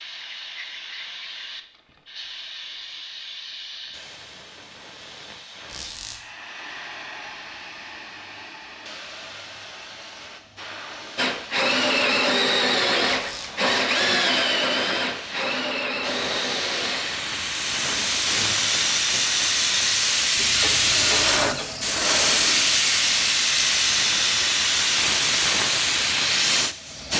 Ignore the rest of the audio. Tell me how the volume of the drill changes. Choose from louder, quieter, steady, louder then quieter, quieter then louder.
quieter.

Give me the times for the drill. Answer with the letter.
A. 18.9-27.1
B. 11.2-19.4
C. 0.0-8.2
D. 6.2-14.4
B.